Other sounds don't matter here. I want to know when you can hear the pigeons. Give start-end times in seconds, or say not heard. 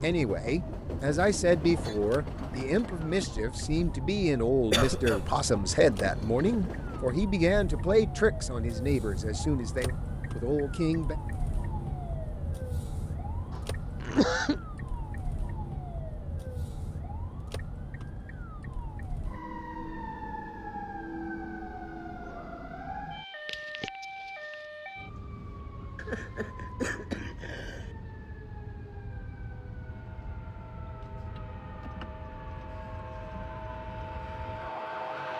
not heard.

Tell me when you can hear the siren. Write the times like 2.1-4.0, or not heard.
0.0-35.3.